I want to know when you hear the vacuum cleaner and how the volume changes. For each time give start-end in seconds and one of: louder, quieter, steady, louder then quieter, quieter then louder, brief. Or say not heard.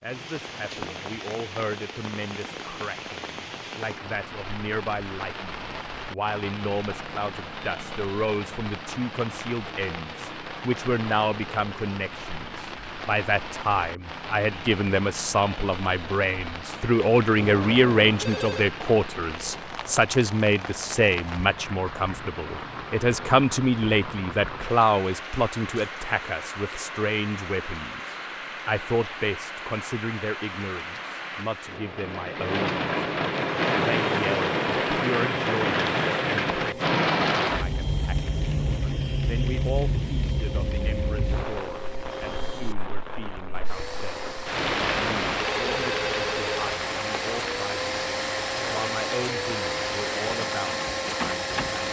33.4-51.8 louder.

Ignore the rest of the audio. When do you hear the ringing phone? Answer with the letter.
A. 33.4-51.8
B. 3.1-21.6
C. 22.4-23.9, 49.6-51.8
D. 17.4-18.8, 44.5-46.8
D.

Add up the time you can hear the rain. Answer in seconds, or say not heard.
52 s.